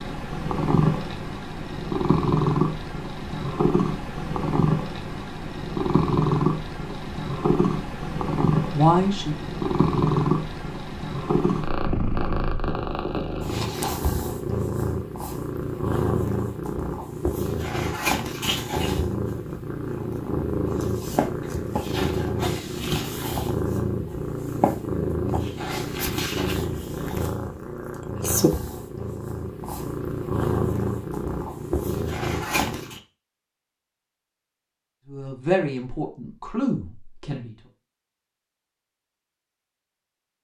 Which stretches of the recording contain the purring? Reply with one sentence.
You can hear the purring from 0.0 to 33.0 s.